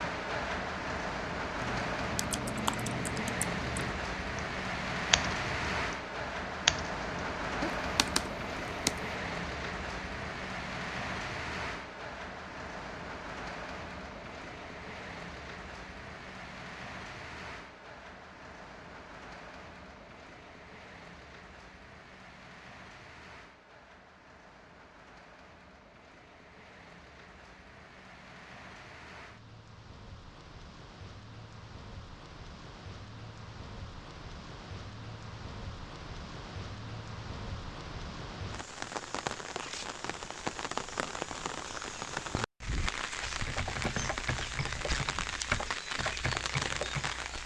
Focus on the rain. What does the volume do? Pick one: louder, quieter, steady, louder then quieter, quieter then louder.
quieter then louder.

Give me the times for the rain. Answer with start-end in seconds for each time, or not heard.
0.0-47.4.